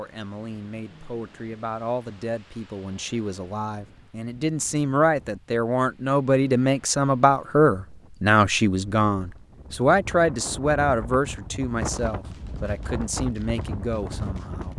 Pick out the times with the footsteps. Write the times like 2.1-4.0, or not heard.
not heard.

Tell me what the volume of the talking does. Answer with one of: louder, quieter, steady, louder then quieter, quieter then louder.
louder then quieter.